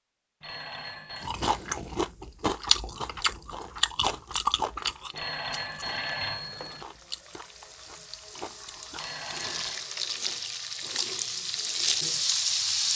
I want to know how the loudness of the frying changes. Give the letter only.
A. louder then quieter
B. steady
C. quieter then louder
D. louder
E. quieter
D.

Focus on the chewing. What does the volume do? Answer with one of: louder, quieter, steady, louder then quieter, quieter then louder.
quieter.